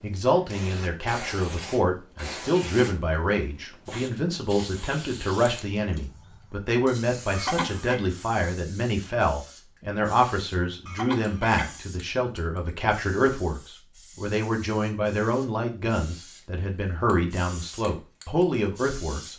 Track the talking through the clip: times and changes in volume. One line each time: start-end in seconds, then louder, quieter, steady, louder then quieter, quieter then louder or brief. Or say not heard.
0.0-19.3 steady.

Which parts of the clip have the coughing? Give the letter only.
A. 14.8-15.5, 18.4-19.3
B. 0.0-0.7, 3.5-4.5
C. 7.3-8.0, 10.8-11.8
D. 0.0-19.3
C.